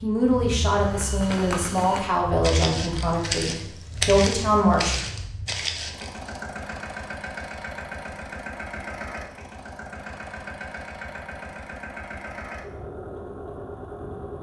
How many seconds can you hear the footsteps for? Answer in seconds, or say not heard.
6 s.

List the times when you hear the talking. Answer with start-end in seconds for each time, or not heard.
0.0-5.0.